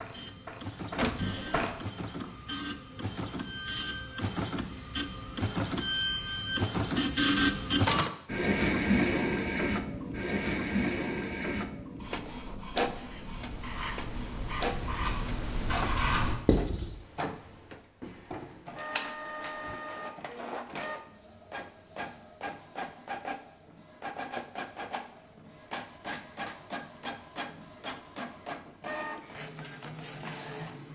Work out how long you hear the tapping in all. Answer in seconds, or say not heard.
2 s.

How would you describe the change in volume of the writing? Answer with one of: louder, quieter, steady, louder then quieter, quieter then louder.
louder.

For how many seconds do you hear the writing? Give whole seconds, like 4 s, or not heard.
4 s.